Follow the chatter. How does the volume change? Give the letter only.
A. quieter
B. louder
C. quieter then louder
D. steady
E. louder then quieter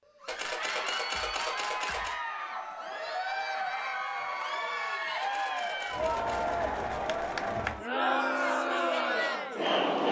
B.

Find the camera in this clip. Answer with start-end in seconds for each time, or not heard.
0.2-2.1, 5.2-6.6.